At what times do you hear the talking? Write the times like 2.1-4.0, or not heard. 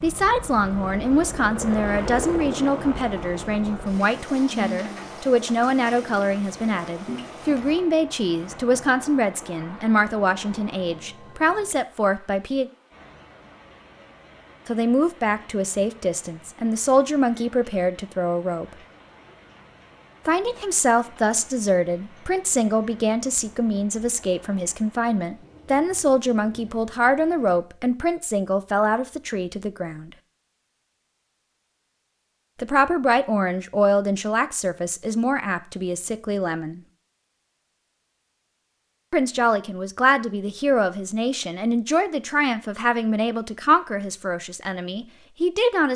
0.0-12.7, 14.7-18.6, 20.2-30.1, 32.6-36.8, 39.1-45.9.